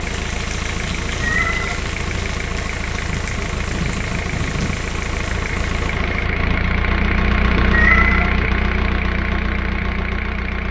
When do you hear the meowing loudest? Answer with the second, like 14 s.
8 s.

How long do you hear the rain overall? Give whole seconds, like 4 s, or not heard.
6 s.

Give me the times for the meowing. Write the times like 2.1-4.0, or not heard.
1.2-1.8, 7.7-8.3.